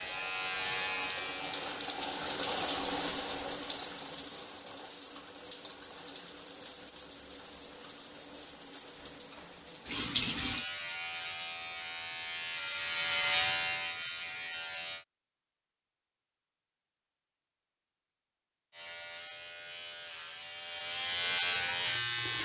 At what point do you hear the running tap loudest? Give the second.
3 s.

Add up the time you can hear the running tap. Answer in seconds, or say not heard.
11 s.